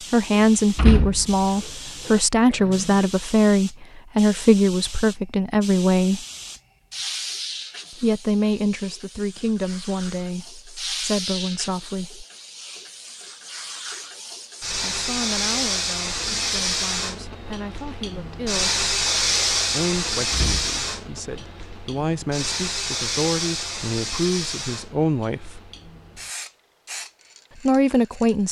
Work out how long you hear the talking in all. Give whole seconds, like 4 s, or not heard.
21 s.